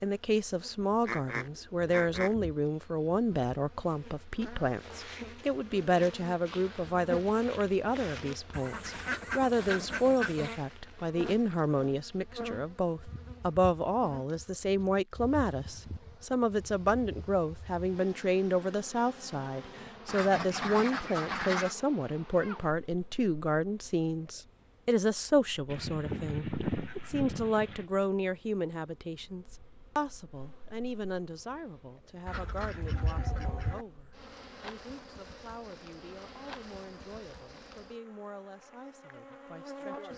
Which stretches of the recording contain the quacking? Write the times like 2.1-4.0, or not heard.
1.1-2.4, 8.5-10.6, 20.1-21.8, 25.7-27.9, 32.2-33.9.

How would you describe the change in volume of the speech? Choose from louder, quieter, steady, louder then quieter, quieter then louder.
quieter.